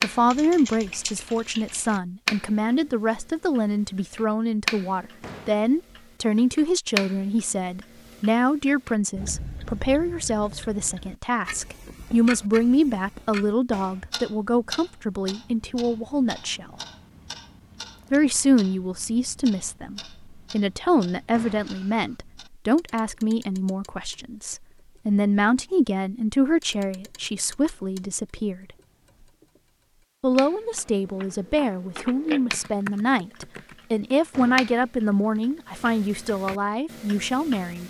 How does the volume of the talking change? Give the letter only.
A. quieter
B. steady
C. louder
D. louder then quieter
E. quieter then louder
B.